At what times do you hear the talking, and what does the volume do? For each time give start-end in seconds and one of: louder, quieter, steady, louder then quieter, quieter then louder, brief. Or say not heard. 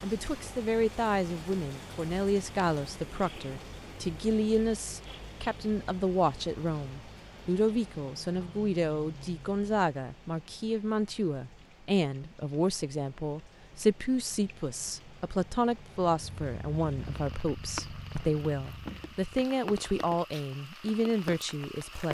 0.0-22.0 steady.